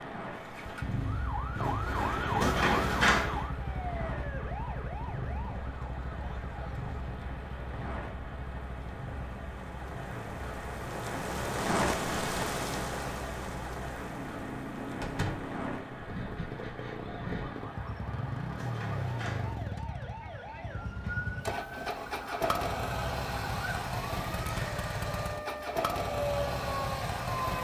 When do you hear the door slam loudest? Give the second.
3 s.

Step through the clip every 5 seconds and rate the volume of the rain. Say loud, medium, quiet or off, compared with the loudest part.
medium, medium, loud, medium, off, off.